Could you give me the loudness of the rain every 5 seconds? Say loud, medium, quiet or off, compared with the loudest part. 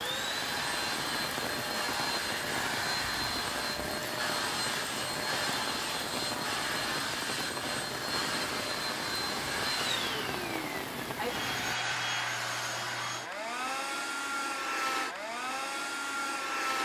loud, loud, loud, off.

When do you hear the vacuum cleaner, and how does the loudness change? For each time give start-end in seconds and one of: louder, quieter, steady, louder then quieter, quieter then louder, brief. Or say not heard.
0.0-16.7 steady.